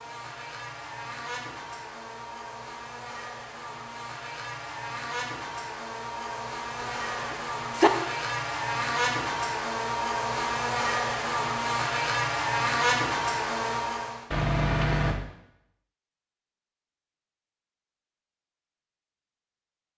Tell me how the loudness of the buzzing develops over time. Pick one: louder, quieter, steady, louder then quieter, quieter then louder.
louder.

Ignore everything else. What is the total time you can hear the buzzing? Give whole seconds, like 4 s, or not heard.
14 s.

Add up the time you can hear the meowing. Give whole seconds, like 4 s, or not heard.
2 s.